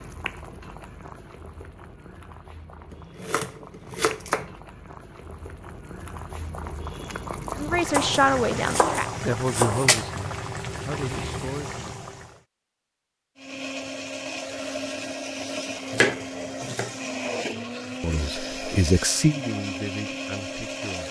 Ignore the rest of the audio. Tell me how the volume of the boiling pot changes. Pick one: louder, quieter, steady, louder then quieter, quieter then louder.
louder.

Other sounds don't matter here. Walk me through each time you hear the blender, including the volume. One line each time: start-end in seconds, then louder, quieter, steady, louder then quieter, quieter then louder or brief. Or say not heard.
13.3-21.0 steady.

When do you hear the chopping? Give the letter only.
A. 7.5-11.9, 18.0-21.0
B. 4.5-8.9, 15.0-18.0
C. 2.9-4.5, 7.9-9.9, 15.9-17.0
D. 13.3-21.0
C.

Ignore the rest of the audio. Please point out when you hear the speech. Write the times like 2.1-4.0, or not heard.
7.5-11.9, 18.0-21.0.